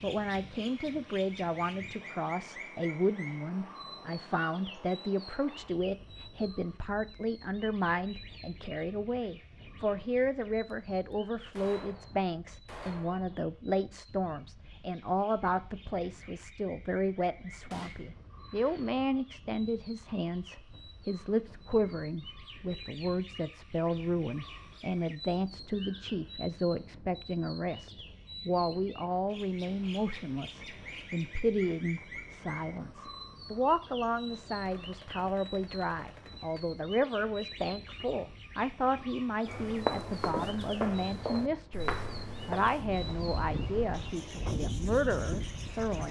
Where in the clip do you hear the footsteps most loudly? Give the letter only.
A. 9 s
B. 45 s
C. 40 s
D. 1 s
C.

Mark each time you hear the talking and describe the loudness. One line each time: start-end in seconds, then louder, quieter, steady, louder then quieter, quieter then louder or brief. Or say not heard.
0.0-46.0 steady.